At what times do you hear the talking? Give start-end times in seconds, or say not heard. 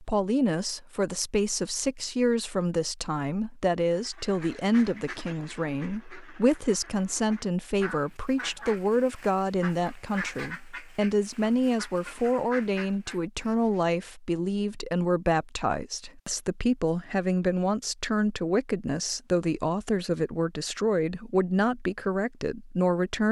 0.0-23.2.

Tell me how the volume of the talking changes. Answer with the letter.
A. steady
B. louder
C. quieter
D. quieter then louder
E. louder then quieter
A.